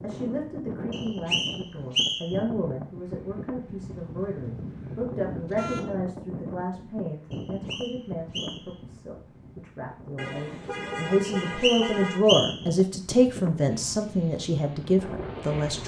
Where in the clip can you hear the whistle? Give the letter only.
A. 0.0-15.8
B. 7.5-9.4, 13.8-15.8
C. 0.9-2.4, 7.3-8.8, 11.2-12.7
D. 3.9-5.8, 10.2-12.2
C.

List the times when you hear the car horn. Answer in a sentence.
The car horn can be heard from 3.9 to 5.8 s and from 10.2 to 12.2 s.